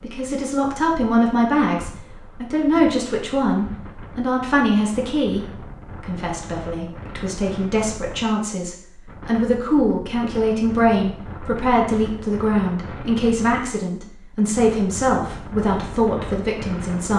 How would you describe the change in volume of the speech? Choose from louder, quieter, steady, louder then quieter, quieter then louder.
steady.